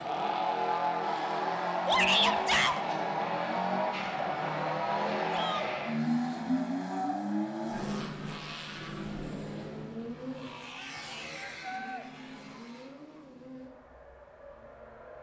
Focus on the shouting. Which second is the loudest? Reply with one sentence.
The loudest moment of the shouting is at 2 seconds.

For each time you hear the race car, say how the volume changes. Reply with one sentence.
The race car can be heard from 0.0 to 15.1 s, getting quieter.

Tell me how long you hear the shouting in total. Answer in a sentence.
The shouting can be heard for 3 seconds in total.